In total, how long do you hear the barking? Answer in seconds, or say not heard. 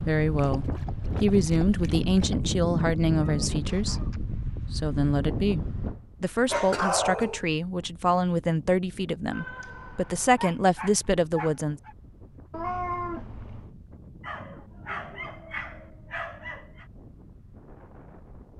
7 s.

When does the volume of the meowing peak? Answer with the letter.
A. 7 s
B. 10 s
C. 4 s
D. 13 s
D.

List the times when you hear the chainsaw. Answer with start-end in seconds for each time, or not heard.
not heard.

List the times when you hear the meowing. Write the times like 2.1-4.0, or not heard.
3.4-4.2, 9.3-10.4, 12.5-13.7.